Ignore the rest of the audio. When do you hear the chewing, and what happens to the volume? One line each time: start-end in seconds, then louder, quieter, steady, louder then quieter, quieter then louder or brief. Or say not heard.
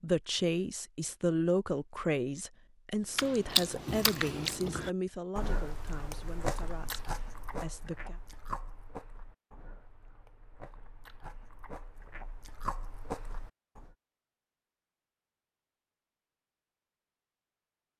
3.1-13.9 quieter then louder.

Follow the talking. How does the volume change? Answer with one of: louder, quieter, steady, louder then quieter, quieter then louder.
quieter.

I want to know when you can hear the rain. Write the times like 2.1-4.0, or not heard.
not heard.